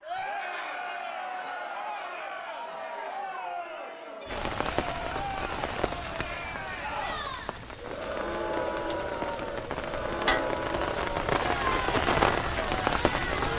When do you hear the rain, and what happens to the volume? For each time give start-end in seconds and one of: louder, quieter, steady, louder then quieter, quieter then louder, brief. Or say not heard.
4.2-13.5 quieter then louder.